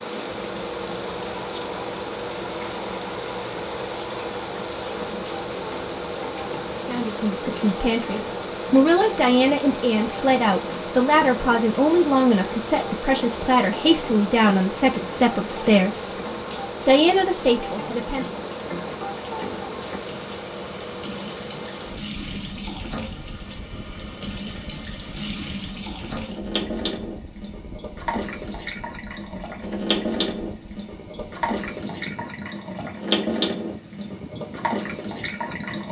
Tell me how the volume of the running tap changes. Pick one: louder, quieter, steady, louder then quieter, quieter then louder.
louder.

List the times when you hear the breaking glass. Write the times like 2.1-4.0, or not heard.
not heard.